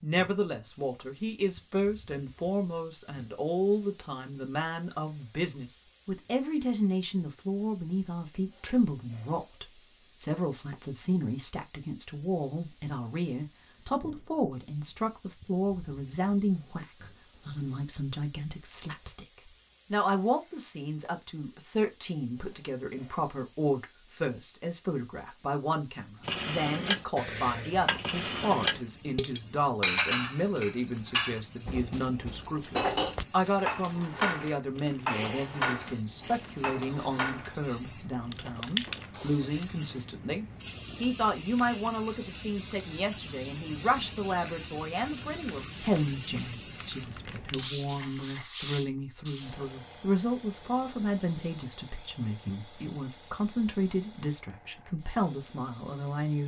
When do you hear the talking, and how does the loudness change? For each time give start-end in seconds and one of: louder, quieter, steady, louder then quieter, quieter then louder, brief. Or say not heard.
0.0-56.4 steady.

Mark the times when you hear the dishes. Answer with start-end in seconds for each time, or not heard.
26.2-37.5.